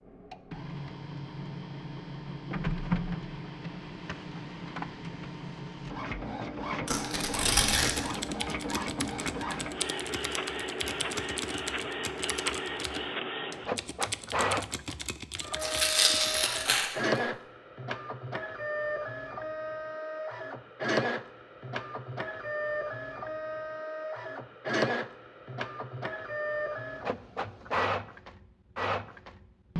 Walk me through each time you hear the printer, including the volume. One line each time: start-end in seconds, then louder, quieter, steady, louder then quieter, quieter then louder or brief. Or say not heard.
0.1-29.7 steady.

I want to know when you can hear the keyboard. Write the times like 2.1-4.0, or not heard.
7.8-16.8.